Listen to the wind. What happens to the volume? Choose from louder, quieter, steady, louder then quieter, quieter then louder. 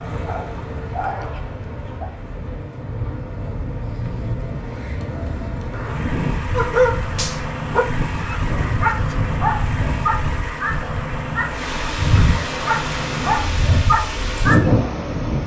louder.